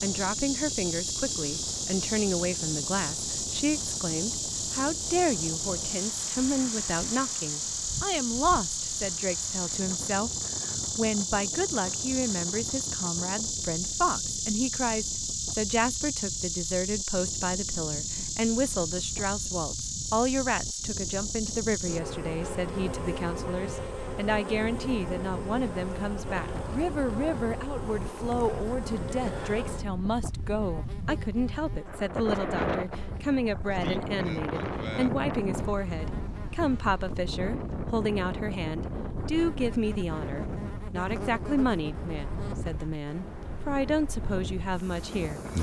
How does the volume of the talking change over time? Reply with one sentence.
The loudness of the talking stays about the same.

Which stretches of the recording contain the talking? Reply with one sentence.
The talking can be heard from 0.0 to 45.4 s.